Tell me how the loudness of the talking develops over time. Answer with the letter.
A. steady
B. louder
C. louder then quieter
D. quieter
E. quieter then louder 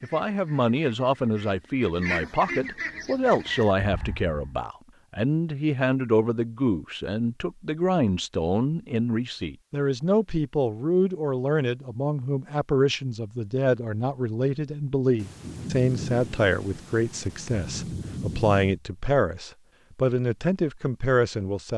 A.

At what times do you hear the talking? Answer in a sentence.
The talking can be heard from 0.0 to 21.7 s.